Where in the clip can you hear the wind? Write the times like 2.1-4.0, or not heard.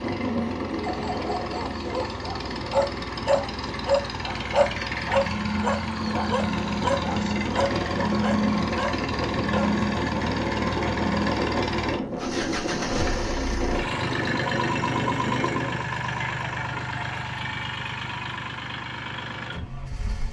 0.0-15.8.